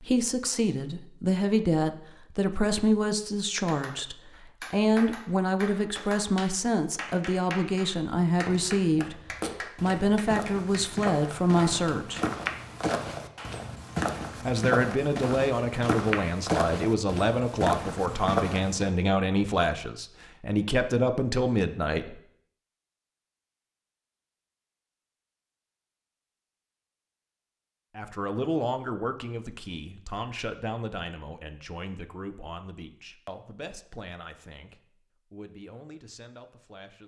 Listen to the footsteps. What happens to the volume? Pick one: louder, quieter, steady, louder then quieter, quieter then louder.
louder.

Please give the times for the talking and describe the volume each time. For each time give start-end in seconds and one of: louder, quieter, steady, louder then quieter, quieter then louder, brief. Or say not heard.
0.0-12.2 steady
14.4-22.2 steady
27.9-37.0 quieter.